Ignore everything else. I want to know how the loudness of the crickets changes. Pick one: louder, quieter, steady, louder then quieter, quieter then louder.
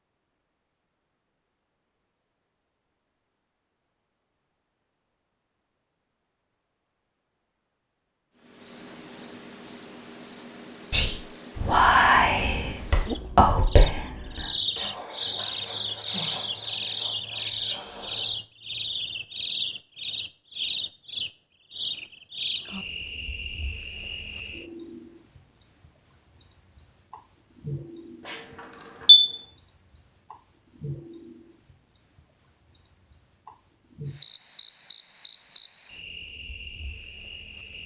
quieter.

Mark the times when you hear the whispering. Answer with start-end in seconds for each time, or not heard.
10.9-18.4.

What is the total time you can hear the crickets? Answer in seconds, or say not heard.
29 s.